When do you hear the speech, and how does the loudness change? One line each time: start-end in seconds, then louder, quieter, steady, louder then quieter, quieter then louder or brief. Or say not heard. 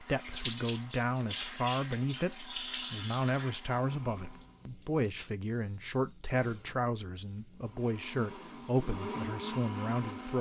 0.0-10.3 steady.